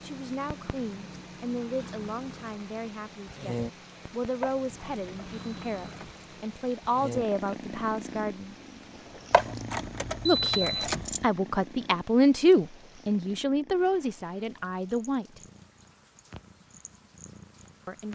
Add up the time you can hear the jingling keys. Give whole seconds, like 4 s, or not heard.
4 s.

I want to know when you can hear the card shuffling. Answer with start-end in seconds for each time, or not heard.
not heard.